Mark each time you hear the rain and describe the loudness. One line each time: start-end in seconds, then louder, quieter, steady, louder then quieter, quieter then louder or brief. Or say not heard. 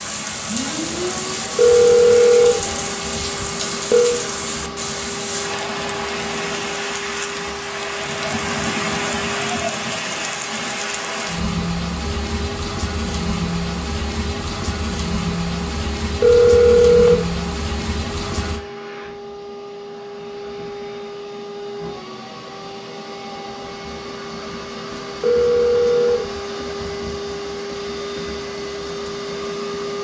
0.0-18.6 steady.